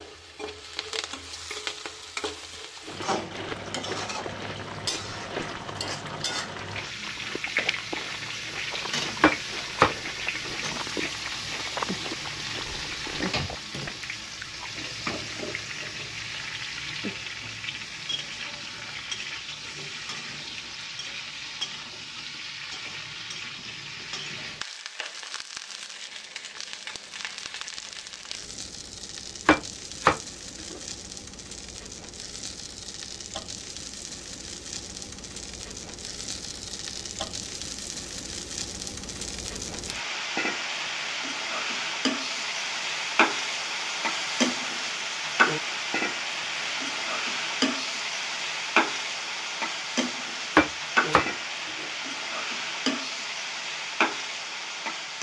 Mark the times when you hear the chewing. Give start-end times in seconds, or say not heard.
2.8-14.7.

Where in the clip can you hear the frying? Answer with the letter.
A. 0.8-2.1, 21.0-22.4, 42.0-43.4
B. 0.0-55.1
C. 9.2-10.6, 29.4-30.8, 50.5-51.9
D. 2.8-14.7
B.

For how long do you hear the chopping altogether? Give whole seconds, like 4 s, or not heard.
4 s.